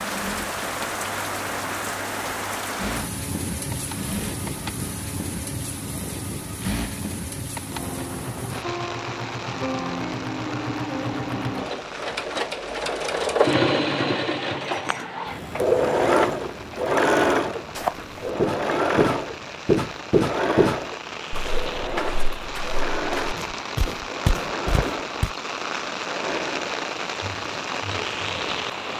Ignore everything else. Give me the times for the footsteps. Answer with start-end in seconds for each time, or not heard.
17.8-25.4.